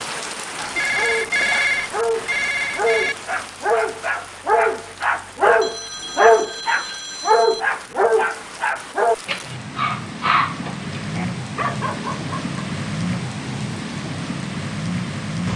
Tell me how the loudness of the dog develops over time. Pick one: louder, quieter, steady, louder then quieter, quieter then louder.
louder then quieter.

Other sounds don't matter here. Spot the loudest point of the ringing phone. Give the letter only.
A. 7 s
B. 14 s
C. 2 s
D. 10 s
C.